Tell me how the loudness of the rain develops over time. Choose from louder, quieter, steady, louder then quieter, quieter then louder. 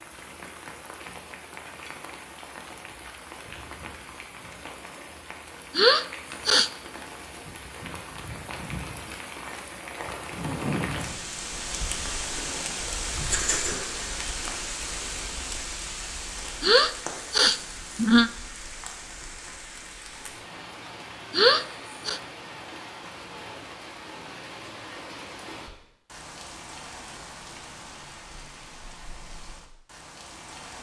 louder then quieter.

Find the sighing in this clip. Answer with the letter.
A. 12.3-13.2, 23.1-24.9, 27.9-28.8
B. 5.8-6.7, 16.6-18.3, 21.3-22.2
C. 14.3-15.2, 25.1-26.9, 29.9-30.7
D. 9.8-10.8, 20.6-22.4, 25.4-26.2
B.